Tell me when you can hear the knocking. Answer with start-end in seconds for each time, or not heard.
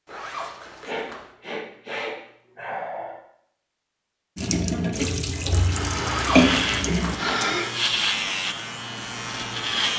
not heard.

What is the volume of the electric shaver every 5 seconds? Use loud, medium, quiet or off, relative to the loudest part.
off, loud.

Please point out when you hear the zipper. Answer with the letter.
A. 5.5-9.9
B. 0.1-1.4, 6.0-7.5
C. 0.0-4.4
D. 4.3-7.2
B.